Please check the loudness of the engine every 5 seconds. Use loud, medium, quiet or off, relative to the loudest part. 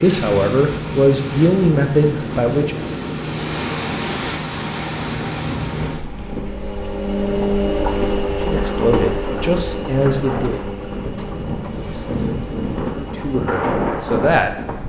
medium, loud, medium.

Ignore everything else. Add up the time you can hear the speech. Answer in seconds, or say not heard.
7 s.